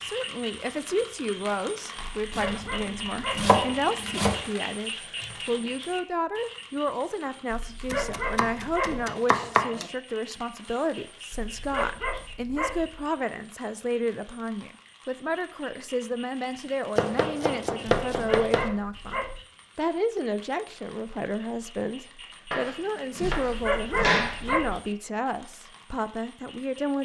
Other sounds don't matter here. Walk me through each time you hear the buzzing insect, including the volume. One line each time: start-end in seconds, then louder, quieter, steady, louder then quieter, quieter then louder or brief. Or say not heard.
not heard.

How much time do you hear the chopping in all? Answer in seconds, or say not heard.
8 s.